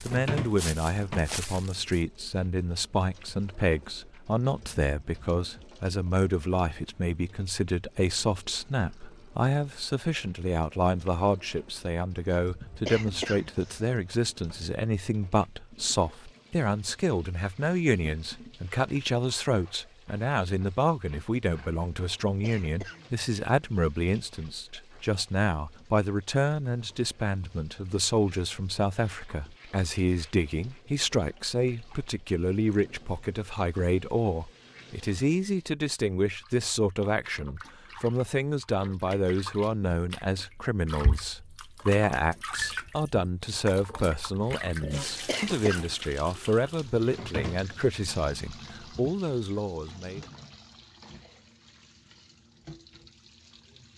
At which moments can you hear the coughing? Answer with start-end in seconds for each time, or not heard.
12.8-13.9, 22.4-23.1, 45.2-45.9.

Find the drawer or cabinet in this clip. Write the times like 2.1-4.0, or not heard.
0.1-1.2, 47.1-47.9.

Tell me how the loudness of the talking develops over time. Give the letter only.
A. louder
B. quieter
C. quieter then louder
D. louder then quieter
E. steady
E.